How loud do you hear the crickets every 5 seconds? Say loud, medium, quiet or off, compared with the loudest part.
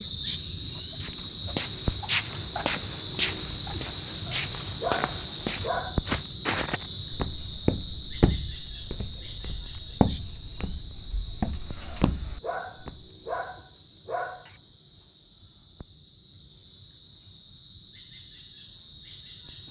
loud, loud, quiet, quiet.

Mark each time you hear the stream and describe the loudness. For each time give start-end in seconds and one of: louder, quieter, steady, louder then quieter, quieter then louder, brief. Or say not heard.
not heard.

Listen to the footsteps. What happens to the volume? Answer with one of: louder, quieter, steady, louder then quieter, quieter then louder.
quieter.